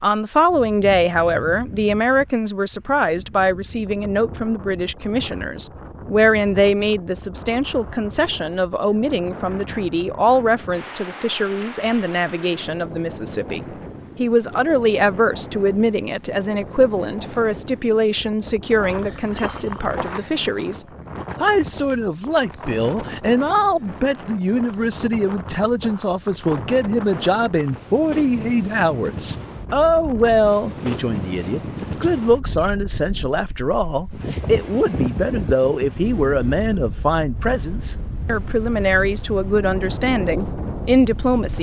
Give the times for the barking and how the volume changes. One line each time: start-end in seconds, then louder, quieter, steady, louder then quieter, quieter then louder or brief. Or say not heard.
not heard.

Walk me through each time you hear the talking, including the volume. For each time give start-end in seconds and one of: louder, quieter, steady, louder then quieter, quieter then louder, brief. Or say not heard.
0.0-41.5 steady.